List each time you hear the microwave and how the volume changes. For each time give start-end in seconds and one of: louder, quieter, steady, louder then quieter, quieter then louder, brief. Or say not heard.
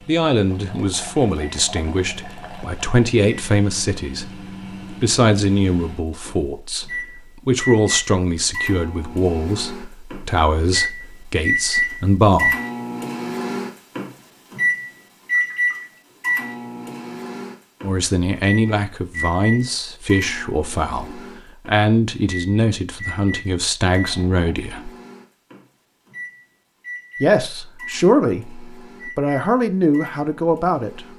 0.0-31.1 louder then quieter.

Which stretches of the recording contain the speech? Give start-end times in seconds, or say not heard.
0.1-4.2, 4.9-12.6, 17.8-24.9, 27.2-31.1.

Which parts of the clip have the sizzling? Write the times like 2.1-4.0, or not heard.
not heard.